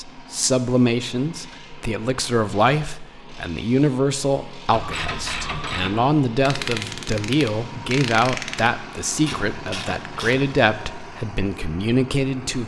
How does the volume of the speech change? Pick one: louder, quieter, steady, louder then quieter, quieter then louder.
steady.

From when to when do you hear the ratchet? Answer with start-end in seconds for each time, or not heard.
4.7-10.6.